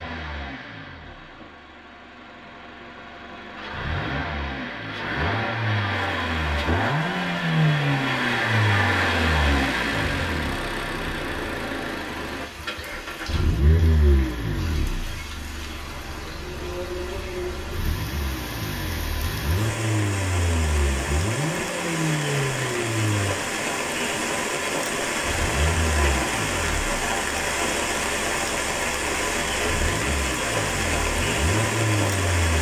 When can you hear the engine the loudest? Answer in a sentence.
The volume of the engine peaks at 8 seconds.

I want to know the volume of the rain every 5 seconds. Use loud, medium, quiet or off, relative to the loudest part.
off, quiet, quiet, medium, loud, loud, loud.